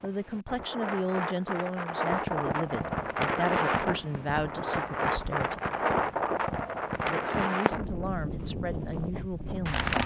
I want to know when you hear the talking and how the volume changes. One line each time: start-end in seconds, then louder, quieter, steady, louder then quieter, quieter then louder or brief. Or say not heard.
0.0-5.6 steady
7.0-10.0 brief.